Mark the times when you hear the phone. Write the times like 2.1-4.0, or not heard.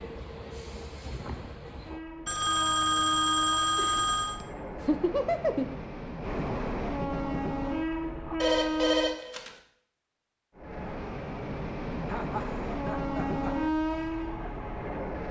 2.2-4.4, 8.4-9.6.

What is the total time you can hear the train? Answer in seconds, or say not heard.
14 s.